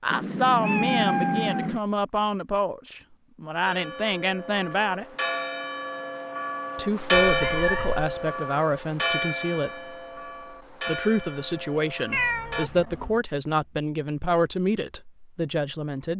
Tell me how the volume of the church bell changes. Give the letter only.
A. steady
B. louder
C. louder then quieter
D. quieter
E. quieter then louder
C.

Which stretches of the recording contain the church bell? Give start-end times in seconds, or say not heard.
3.6-12.7.